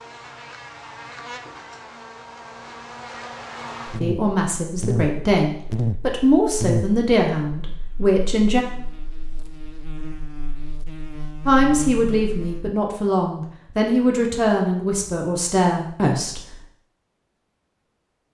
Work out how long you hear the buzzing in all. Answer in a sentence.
The buzzing can be heard for 13 seconds in total.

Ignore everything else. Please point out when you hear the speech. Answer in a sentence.
You can hear the speech from 4.0 to 8.7 s and from 11.4 to 16.6 s.